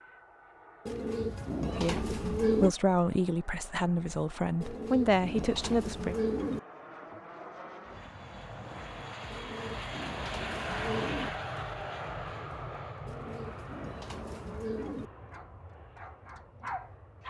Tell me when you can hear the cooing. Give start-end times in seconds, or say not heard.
0.8-2.8, 4.6-6.6, 9.3-11.3, 13.1-15.1.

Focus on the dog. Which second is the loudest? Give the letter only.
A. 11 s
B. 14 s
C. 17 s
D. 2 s
C.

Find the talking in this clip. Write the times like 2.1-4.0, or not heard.
1.8-6.2.